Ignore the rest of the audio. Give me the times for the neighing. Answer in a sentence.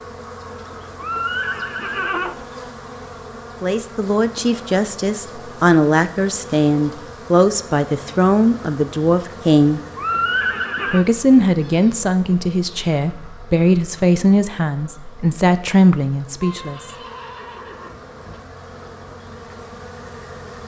The neighing can be heard from 0.9 to 2.4 s, from 9.9 to 11.1 s and from 16.4 to 18.4 s.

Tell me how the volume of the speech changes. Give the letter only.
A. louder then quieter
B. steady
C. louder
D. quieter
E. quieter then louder
B.